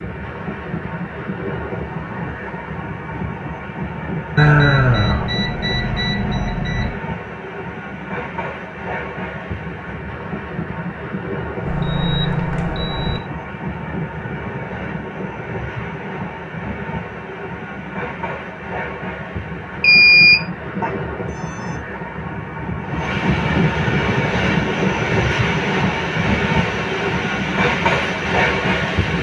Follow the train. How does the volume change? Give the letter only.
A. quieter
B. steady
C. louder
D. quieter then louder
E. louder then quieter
C.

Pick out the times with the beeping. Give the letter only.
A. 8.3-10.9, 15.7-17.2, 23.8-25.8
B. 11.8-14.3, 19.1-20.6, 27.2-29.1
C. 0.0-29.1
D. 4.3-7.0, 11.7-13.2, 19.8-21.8
D.